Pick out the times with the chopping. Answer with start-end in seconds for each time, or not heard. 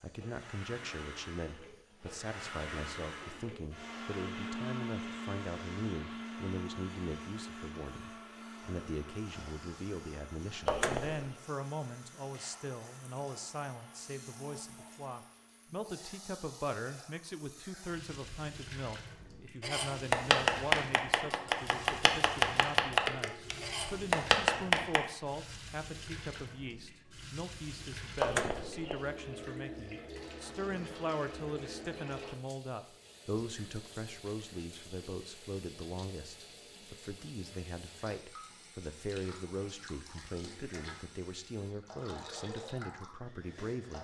19.6-25.0.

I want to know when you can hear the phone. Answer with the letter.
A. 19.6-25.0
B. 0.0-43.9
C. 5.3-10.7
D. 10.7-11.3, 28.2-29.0
D.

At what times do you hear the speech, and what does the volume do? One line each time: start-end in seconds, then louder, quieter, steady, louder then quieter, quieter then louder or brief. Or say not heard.
0.0-43.9 steady.